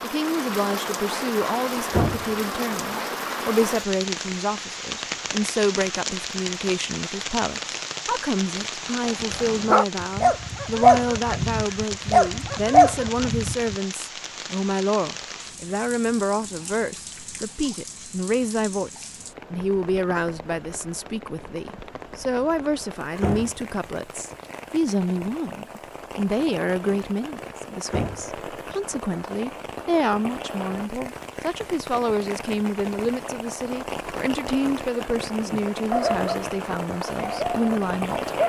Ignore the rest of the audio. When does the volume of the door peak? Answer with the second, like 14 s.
2 s.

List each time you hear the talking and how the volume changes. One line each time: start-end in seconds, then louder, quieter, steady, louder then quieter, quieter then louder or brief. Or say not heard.
0.0-38.3 steady.